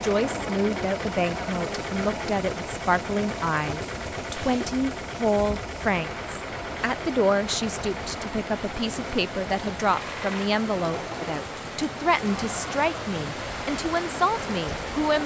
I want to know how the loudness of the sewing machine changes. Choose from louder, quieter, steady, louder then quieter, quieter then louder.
quieter.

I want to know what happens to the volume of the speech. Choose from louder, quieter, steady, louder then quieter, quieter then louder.
steady.